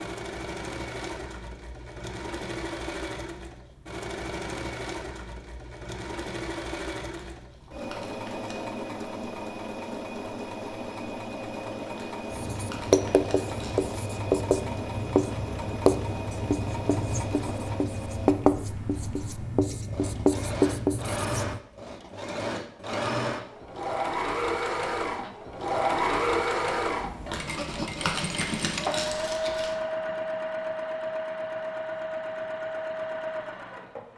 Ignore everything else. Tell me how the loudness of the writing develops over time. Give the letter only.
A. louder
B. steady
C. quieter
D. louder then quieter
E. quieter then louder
E.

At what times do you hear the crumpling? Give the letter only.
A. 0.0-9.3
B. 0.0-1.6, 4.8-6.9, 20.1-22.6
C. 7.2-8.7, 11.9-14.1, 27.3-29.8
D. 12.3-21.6
C.